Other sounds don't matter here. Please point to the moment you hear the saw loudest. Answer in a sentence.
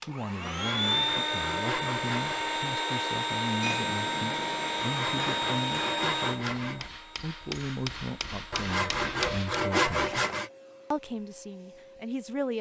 The loudest moment of the saw is at 10 seconds.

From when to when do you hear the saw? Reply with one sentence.
You can hear the saw from 0.5 to 2.6 s, from 4.8 to 6.9 s and from 8.5 to 10.5 s.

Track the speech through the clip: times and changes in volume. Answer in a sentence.
The speech can be heard from 0.1 to 10.2 s, at a steady volume; and briefly from 10.9 to 12.5 s.